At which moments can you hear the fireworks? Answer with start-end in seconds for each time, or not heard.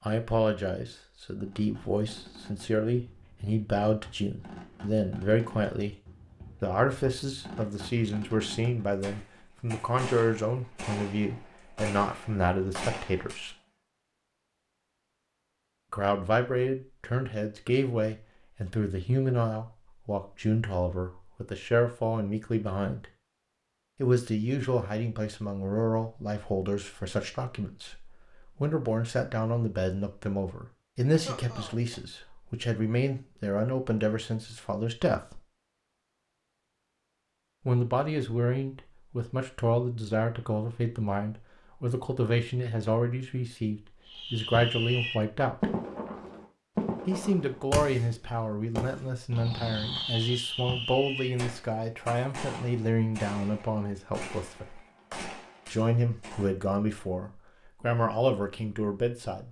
1.4-13.4, 44.0-56.5.